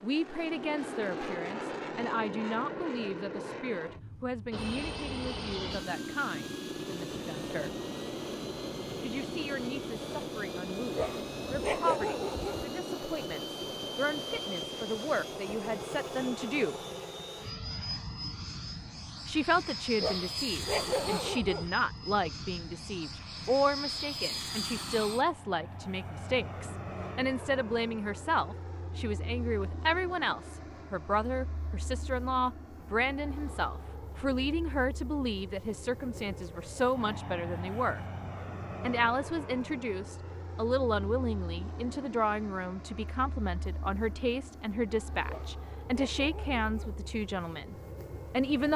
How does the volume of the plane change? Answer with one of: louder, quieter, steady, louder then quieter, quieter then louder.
quieter.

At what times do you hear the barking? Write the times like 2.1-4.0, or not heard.
10.9-12.7, 20.0-21.7, 45.2-47.0.